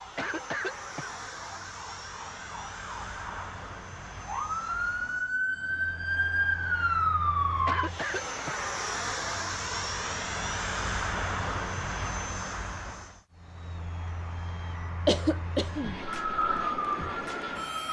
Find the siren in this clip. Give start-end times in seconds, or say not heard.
0.0-7.9, 16.0-17.8.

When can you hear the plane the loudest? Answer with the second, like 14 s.
11 s.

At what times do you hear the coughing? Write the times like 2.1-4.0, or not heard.
0.1-1.6, 7.7-8.7, 15.1-16.0.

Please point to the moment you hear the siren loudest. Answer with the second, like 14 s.
7 s.